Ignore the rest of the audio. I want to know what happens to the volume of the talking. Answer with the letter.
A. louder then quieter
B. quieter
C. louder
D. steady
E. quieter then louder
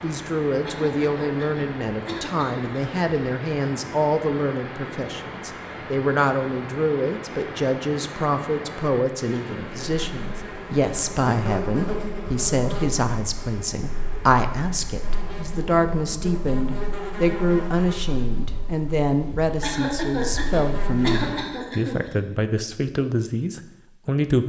D.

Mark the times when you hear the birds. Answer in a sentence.
The birds can't be heard in this clip.